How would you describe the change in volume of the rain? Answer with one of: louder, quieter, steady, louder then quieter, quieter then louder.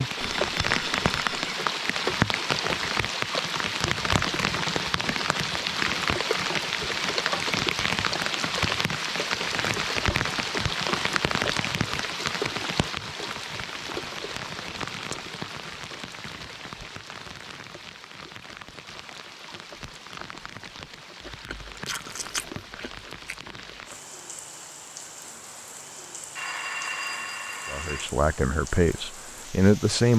quieter.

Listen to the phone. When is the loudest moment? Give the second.
27 s.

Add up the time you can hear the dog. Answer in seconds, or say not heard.
not heard.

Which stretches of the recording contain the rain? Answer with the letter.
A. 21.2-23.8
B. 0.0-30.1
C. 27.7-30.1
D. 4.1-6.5
B.